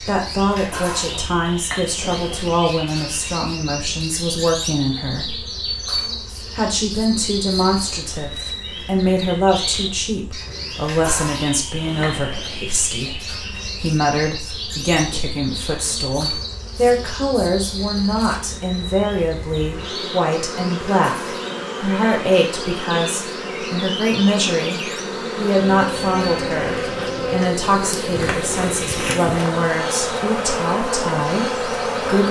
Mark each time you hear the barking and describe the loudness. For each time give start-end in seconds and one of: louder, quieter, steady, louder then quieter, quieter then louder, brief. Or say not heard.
not heard.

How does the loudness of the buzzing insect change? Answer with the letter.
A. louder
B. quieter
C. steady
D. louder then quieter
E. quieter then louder
A.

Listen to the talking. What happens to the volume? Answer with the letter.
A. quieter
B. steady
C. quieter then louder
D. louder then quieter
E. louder
B.